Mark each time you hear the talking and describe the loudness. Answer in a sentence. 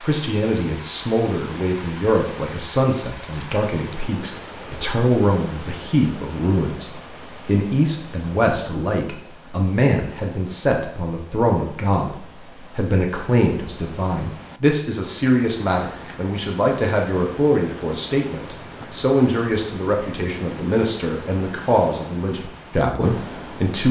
The talking can be heard from 0.0 to 23.8 s, at a steady volume.